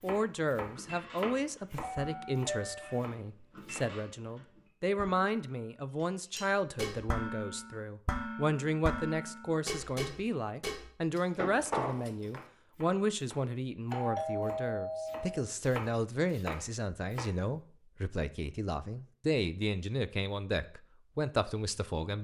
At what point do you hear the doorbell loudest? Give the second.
14 s.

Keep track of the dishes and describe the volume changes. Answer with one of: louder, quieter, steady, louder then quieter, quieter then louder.
louder.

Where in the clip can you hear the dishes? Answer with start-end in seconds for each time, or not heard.
0.7-12.4.